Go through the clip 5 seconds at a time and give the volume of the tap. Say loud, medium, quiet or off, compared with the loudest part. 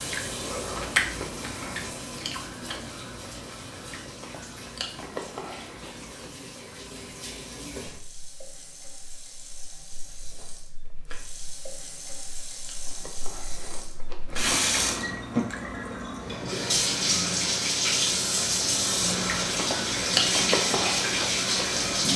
quiet, quiet, medium, loud, loud.